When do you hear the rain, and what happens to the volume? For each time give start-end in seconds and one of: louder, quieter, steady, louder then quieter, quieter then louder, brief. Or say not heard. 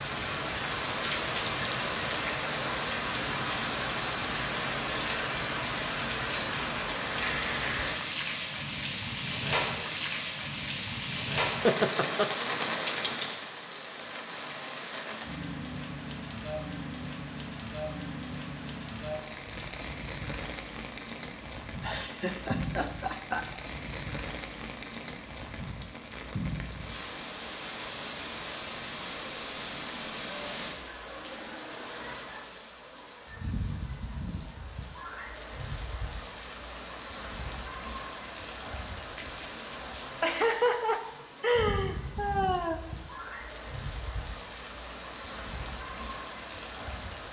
0.0-47.2 quieter.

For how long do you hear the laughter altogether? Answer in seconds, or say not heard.
5 s.